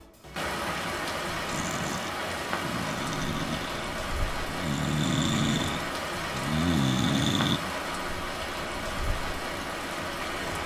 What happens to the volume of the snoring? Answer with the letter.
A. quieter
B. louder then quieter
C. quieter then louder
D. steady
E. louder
E.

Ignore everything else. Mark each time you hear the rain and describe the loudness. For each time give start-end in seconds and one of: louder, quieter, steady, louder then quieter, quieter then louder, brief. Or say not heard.
0.0-10.6 steady.